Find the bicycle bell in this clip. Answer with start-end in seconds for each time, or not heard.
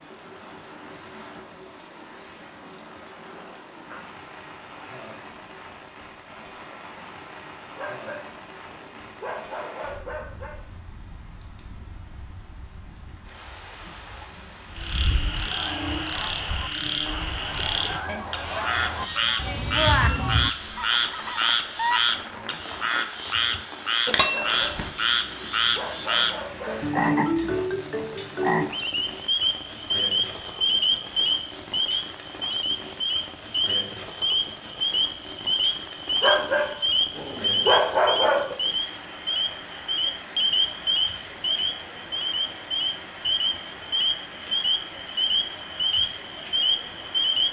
18.1-20.1, 24.1-24.9.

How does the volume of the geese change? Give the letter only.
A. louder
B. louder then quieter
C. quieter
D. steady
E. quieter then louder
A.